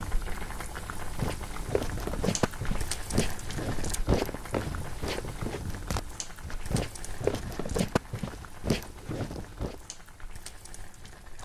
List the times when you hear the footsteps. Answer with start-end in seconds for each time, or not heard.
1.1-9.8.